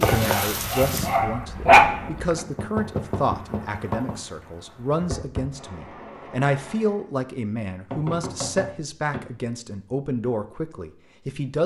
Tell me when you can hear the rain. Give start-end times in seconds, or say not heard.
0.0-7.0.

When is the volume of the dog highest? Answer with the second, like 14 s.
2 s.